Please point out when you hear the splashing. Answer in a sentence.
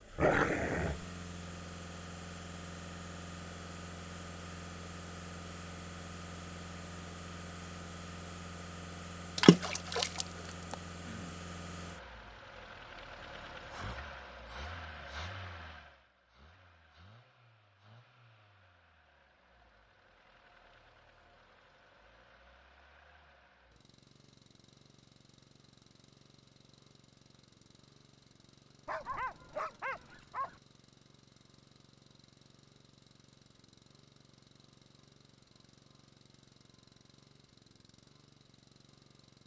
The splashing can be heard from 9.3 to 10.8 s.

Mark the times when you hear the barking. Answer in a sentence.
You can hear the barking from 0.1 to 1.0 s and from 28.9 to 30.6 s.